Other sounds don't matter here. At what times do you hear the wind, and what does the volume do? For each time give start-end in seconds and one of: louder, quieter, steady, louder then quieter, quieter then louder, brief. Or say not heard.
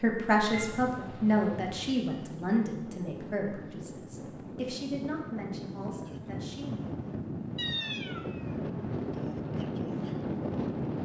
0.1-11.0 louder.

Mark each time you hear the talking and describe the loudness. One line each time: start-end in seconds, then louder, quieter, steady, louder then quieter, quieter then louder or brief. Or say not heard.
0.0-7.0 quieter.